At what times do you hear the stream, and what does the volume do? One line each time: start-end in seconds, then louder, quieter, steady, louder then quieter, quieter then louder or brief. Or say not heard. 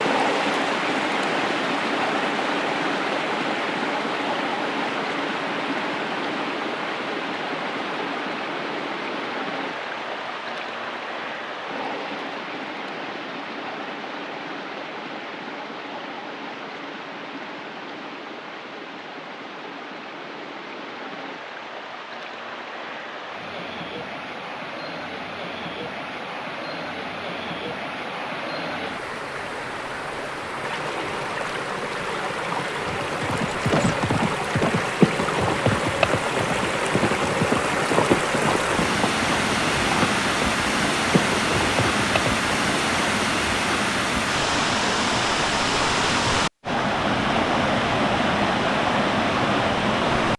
0.0-50.3 quieter then louder.